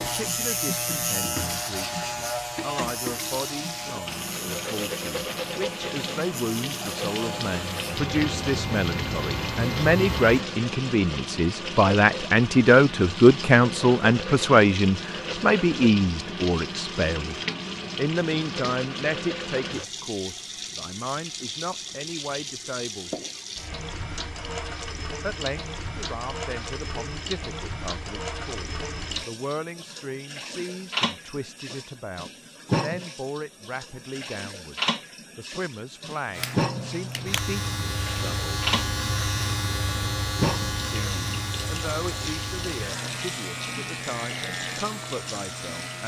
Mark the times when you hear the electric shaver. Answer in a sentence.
You can hear the electric shaver from 0.0 to 10.4 s and from 36.3 to 46.0 s.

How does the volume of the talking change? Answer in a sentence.
The volume of the talking goes up, then down.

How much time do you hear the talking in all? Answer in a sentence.
The talking can be heard for 41 seconds in total.